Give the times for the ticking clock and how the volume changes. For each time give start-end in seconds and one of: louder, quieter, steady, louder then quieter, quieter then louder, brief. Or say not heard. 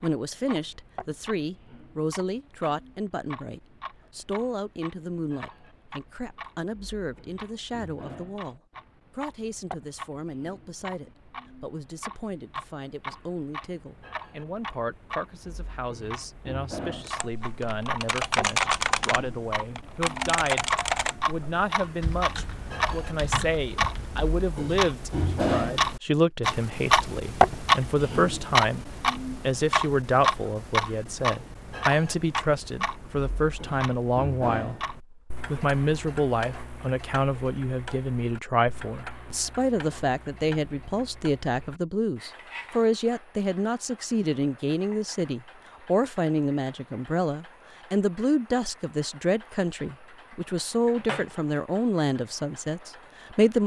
0.0-53.6 louder then quieter.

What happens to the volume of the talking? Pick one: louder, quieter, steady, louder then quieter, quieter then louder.
louder.